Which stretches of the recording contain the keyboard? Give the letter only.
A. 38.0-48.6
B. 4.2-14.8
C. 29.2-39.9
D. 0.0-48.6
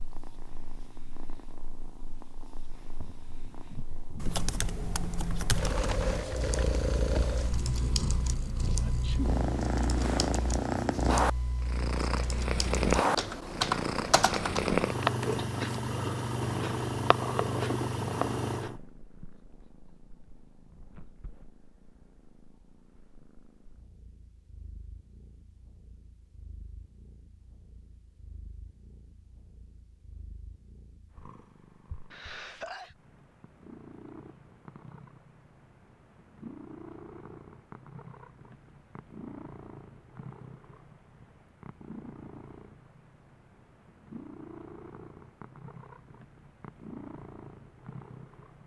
B.